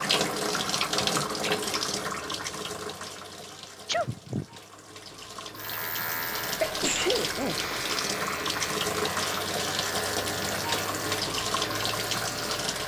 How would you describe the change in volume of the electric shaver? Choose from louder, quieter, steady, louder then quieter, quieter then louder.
steady.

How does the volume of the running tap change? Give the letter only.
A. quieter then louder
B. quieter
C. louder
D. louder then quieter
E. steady
A.